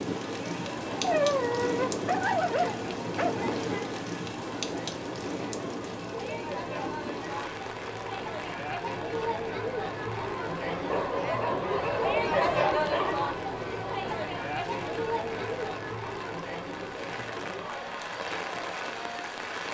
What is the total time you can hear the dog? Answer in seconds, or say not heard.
5 s.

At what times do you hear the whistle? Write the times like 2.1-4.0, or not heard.
not heard.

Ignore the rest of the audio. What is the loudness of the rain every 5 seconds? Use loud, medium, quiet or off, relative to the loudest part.
loud, medium, quiet, medium.